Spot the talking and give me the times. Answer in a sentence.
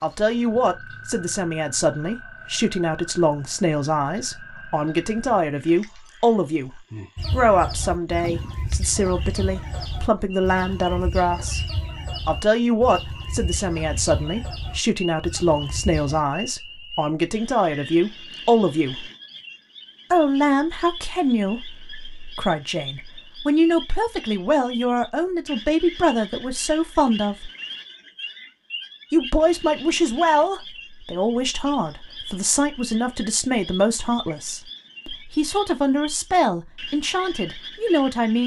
The talking can be heard from 0.0 to 6.7 s, from 7.3 to 11.6 s, from 12.2 to 19.1 s, from 20.1 to 27.5 s and from 29.1 to 38.4 s.